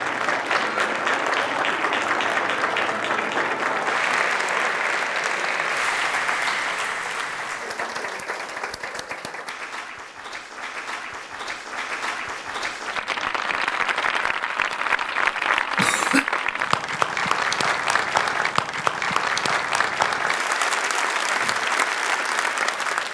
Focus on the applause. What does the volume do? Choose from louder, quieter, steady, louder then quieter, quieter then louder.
quieter then louder.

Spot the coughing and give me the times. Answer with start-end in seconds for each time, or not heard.
15.8-16.3.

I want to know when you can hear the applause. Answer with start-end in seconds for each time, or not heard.
0.0-23.0.